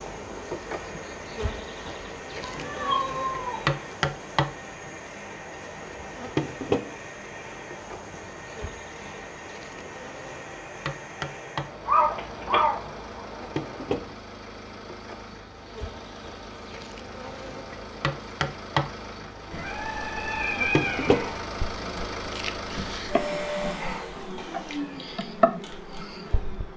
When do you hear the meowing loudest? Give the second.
12 s.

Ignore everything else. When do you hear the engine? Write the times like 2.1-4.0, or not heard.
0.0-26.7.